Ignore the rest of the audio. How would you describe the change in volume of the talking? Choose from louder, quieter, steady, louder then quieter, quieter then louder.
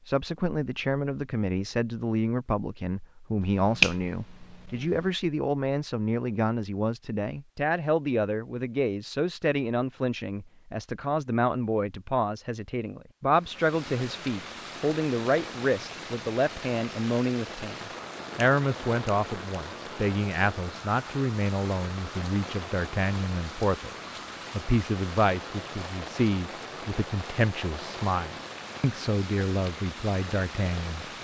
steady.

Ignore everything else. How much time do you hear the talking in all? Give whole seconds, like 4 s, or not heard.
31 s.